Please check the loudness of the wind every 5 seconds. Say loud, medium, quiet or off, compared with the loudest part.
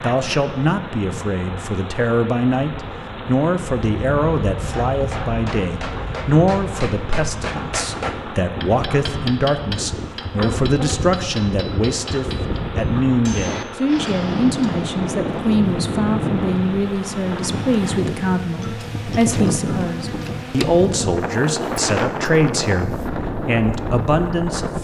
medium, medium, loud, loud, loud.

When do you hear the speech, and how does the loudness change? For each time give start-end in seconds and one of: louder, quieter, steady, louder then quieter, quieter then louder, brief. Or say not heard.
0.0-24.8 steady.